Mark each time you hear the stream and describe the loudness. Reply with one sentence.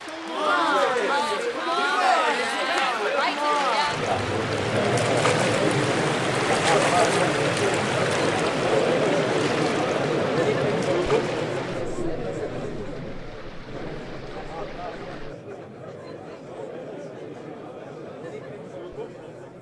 You can hear the stream from 0.0 to 15.3 s, getting louder then quieter.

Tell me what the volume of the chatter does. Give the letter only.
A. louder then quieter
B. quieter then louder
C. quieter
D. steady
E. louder
C.